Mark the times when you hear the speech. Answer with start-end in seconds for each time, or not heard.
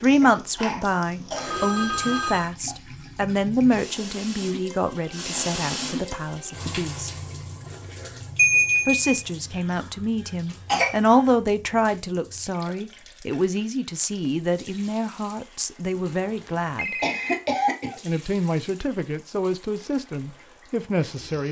0.0-7.1, 8.8-16.9, 18.1-21.4.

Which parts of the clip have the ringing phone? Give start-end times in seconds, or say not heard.
1.4-2.5, 8.3-9.1, 15.9-17.4.